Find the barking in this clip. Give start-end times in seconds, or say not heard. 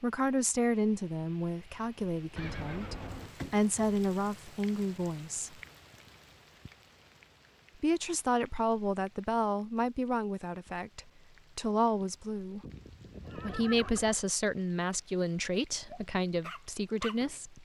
15.8-17.4.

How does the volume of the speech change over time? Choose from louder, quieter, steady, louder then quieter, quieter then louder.
steady.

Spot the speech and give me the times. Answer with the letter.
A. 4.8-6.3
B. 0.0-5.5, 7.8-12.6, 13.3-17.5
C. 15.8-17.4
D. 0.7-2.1
B.